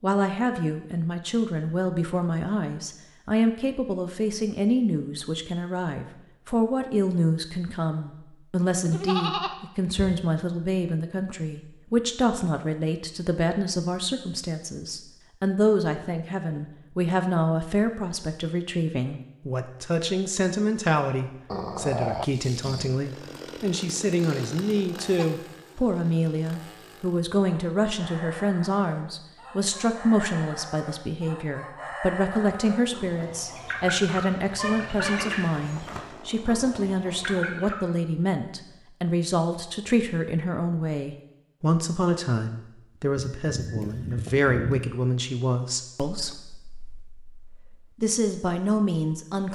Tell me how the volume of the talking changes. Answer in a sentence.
The loudness of the talking stays about the same.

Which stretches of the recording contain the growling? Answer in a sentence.
The growling can be heard from 21.4 to 23.1 s.